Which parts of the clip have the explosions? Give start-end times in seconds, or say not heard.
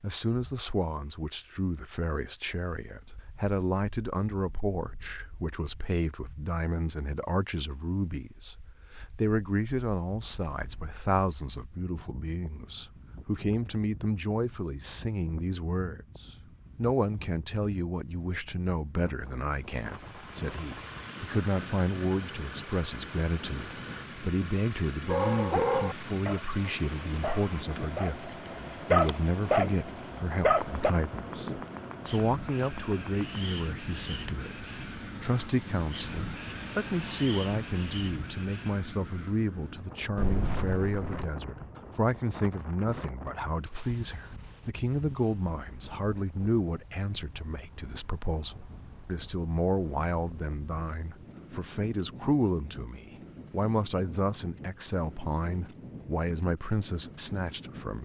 10.2-10.9, 40.1-41.1.